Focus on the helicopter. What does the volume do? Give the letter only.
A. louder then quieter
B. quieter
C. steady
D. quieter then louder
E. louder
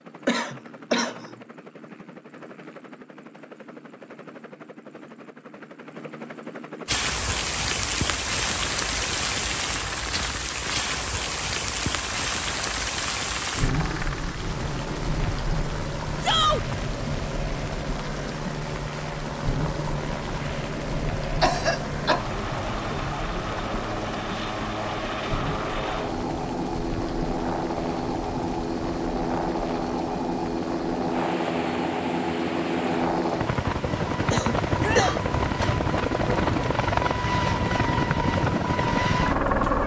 E.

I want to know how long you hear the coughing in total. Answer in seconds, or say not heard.
3 s.